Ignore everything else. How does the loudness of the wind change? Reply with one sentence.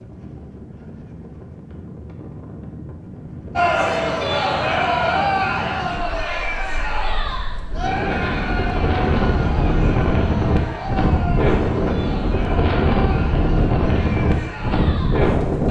The volume of the wind goes up.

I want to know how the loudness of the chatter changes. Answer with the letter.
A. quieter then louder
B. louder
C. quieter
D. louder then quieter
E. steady
C.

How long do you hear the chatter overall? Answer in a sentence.
You can hear the chatter for 12 seconds altogether.